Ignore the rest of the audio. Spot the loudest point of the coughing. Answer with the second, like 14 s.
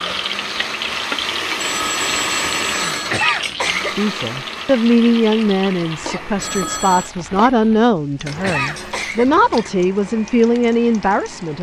3 s.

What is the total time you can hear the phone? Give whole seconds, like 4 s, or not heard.
2 s.